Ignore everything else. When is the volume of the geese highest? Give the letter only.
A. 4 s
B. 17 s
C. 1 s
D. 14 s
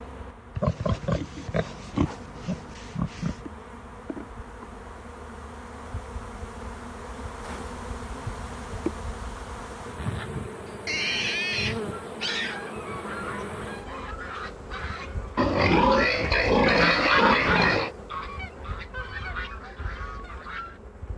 B.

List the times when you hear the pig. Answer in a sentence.
The pig can be heard from 0.6 to 3.4 s, from 10.8 to 12.6 s and from 15.3 to 17.9 s.